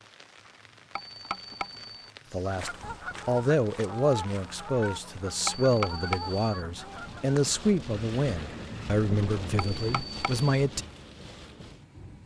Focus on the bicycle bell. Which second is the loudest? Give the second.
6 s.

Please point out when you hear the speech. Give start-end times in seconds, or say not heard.
2.3-10.8.